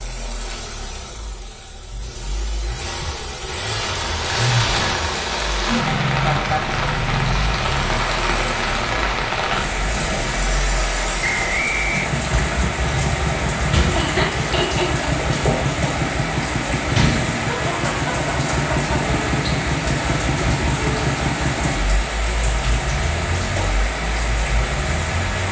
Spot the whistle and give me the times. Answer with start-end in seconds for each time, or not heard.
11.2-12.1.